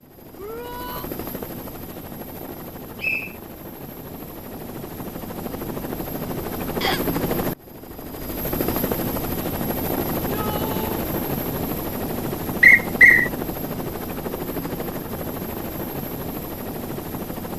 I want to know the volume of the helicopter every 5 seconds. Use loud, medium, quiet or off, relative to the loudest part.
medium, loud, loud, loud.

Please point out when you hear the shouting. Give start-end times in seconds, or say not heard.
0.3-1.1, 10.2-11.1.